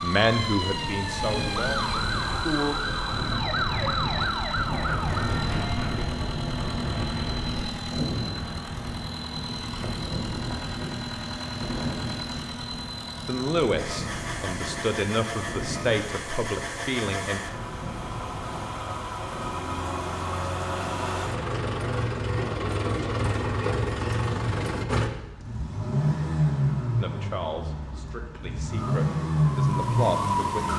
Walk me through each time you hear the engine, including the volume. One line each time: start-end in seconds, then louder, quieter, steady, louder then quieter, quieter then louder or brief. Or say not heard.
0.0-30.5 louder.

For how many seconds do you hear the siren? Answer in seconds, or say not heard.
8 s.